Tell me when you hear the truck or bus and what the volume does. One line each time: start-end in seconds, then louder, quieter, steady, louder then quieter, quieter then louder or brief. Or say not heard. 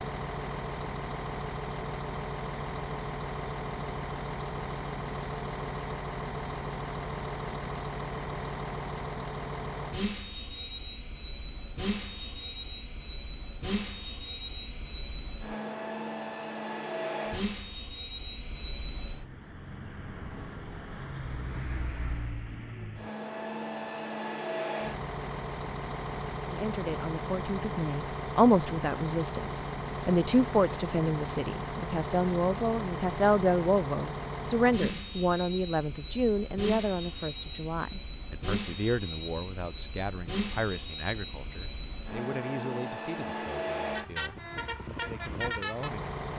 0.0-46.3 steady.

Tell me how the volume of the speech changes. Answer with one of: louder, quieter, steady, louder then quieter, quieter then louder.
quieter.